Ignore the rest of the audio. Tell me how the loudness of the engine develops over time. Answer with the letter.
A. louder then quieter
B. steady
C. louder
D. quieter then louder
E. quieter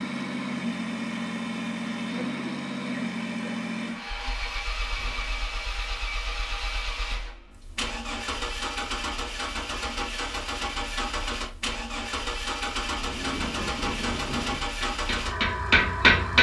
B.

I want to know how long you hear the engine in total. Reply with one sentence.
You can hear the engine for 16 seconds altogether.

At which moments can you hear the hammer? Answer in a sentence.
You can hear the hammer from 12.8 to 16.3 s.